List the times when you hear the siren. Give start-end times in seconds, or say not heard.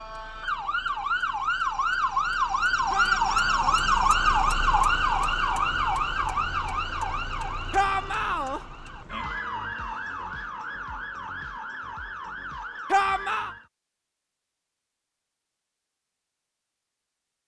0.0-13.7.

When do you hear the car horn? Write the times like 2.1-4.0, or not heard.
not heard.